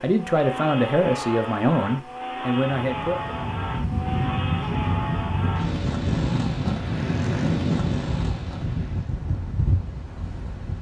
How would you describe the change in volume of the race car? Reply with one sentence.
The loudness of the race car stays about the same.